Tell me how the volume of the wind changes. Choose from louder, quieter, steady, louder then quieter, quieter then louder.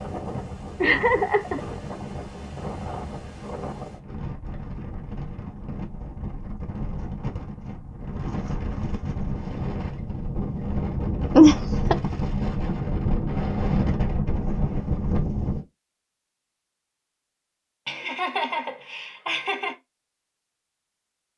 louder.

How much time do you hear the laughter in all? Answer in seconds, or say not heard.
4 s.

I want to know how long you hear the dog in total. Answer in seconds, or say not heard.
not heard.